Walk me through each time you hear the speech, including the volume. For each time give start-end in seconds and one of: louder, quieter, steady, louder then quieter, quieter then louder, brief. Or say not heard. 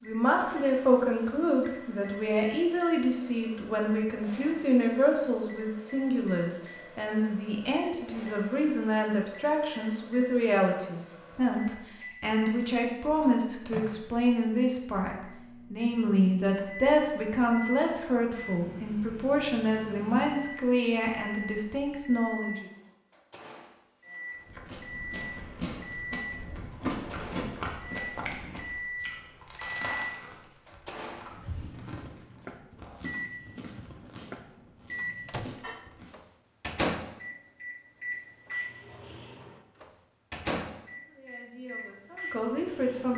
0.0-22.6 steady
41.0-43.1 brief.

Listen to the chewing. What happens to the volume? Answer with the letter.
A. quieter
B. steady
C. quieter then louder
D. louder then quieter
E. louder
A.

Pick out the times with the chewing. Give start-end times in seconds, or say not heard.
24.4-36.1.